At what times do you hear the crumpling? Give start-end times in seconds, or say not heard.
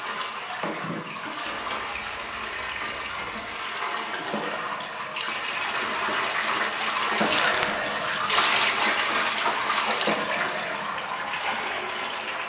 1.4-3.4, 7.2-7.8.